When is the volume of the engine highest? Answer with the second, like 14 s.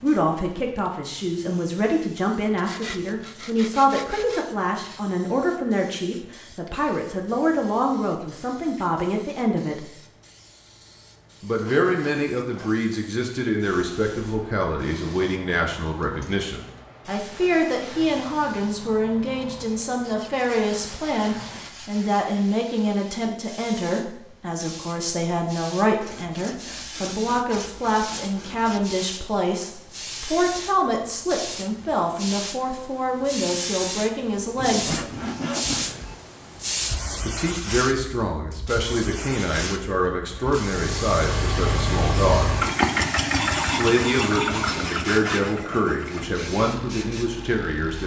43 s.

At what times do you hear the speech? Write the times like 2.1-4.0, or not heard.
0.0-9.9, 11.4-35.0, 37.2-42.5, 43.8-48.0.